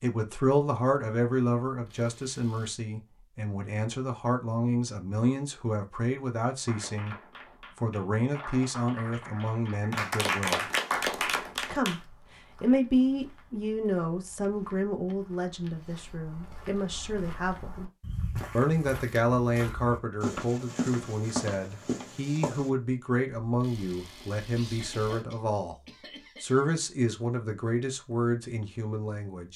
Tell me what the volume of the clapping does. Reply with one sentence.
The volume of the clapping goes up.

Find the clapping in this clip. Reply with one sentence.
The clapping can be heard from 6.6 to 12.0 s.